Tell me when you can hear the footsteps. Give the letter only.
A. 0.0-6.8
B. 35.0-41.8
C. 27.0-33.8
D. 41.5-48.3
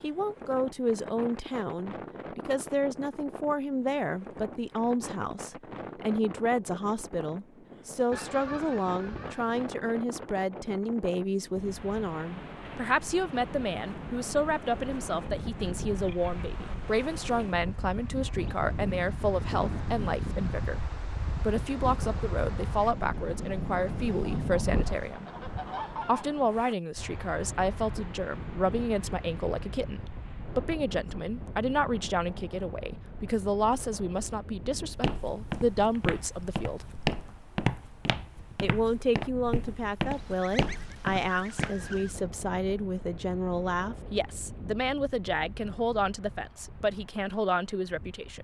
B.